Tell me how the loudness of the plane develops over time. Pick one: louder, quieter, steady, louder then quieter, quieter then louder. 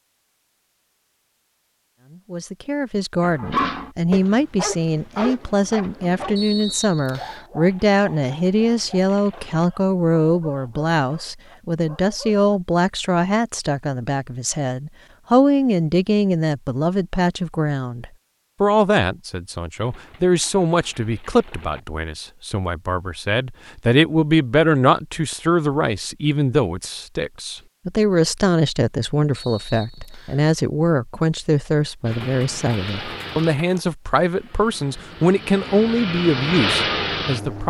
quieter then louder.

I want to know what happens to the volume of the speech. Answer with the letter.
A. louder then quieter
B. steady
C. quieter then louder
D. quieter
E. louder
B.